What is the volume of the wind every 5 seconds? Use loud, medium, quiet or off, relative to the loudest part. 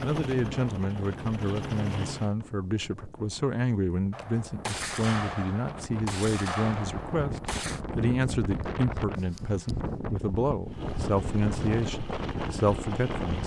medium, loud, loud.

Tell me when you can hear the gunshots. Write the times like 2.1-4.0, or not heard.
4.1-7.8.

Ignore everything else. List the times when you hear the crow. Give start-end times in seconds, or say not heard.
not heard.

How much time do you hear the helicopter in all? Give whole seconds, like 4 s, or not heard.
5 s.